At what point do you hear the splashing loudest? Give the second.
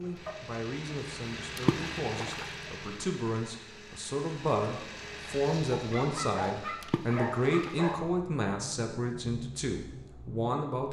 2 s.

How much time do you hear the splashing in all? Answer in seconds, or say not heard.
2 s.